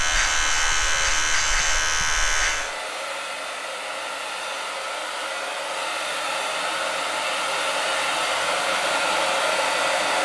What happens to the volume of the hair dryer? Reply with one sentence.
The volume of the hair dryer goes up.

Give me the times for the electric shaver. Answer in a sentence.
You can hear the electric shaver from 0.0 to 2.8 s.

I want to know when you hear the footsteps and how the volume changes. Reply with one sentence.
You can't hear the footsteps here.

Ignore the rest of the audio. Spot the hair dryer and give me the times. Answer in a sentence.
The hair dryer can be heard from 0.0 to 10.2 s.